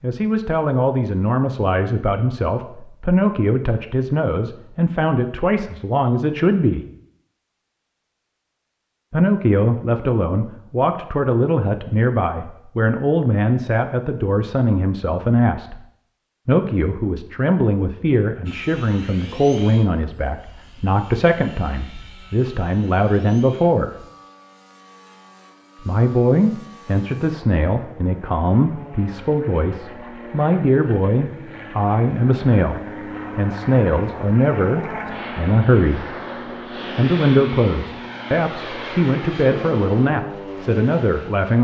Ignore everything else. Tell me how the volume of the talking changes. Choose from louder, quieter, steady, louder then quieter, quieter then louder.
steady.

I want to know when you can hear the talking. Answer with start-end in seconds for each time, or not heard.
0.0-6.8, 9.1-15.8, 16.4-23.9, 25.9-36.2, 37.0-41.5.